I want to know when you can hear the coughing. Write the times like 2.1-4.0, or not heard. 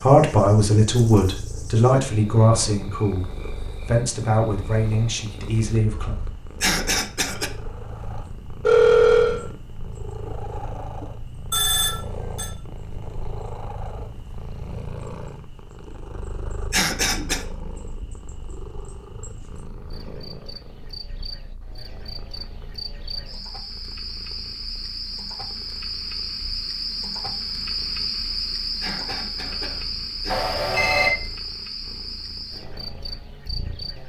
6.6-7.5, 16.7-17.4, 28.8-30.6.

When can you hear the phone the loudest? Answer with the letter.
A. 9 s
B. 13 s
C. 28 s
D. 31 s
A.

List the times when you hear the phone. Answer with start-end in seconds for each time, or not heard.
8.6-9.4, 11.5-12.5, 30.2-31.1.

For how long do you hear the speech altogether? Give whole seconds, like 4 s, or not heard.
6 s.